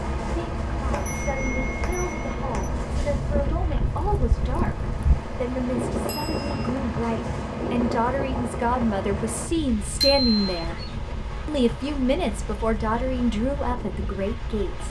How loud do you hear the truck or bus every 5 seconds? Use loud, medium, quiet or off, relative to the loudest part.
loud, loud, off.